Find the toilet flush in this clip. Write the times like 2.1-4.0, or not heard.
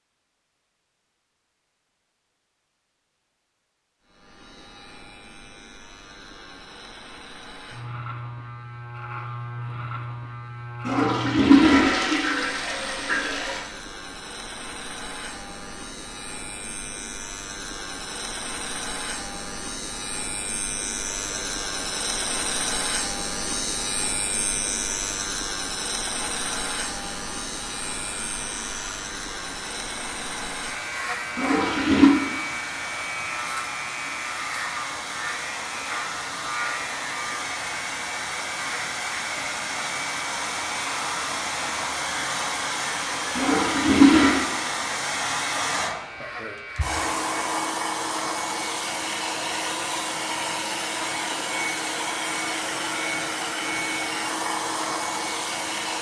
10.8-13.6, 31.4-32.1, 43.4-44.5.